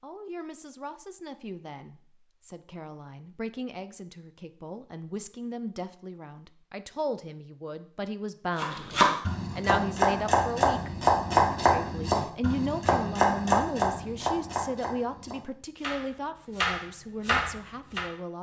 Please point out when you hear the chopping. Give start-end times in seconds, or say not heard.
8.6-18.1.